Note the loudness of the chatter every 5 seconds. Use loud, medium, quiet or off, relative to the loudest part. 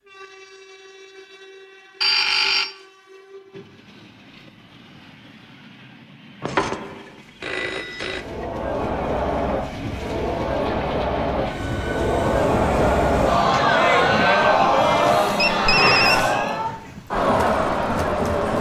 off, medium, loud, loud.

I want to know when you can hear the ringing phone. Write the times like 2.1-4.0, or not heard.
2.0-2.7, 6.4-8.2, 15.3-16.4.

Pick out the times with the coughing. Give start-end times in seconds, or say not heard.
not heard.